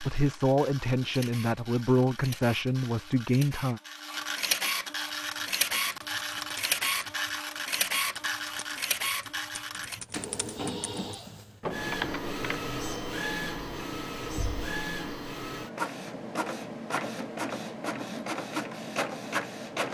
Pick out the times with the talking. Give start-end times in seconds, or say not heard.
0.0-3.8.